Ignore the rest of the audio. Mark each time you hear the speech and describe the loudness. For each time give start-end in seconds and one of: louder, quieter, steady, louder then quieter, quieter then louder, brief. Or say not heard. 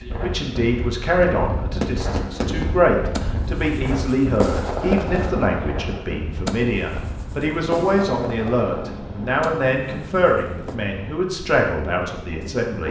0.2-12.8 steady.